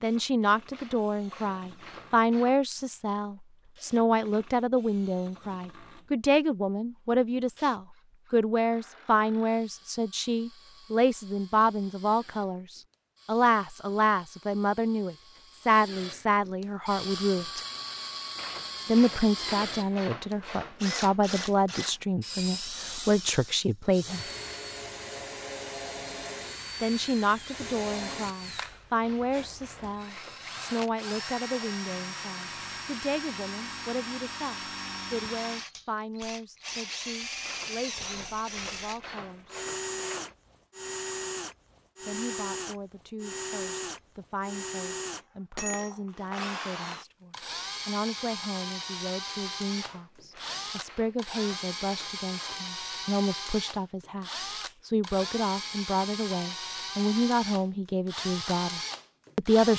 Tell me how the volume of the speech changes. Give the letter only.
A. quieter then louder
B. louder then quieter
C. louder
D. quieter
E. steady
A.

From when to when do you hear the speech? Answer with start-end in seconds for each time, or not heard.
0.0-17.6, 18.9-24.2, 26.8-39.6, 42.0-59.7.